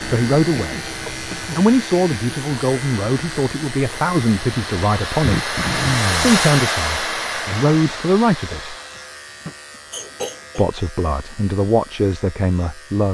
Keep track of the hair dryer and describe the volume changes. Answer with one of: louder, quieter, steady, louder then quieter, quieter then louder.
louder then quieter.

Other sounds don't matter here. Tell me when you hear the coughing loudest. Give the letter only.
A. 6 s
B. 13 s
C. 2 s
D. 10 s
A.